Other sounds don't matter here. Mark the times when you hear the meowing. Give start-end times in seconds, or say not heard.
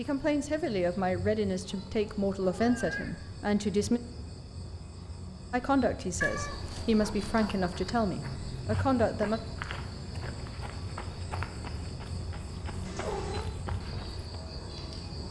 1.6-3.2, 6.2-7.5, 12.8-13.5.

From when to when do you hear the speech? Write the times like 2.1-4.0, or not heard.
0.0-4.0, 5.5-9.4.